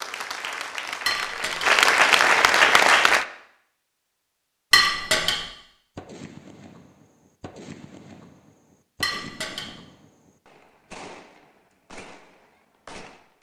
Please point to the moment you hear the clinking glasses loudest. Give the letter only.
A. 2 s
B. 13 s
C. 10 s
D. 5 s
D.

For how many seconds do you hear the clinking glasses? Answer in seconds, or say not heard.
2 s.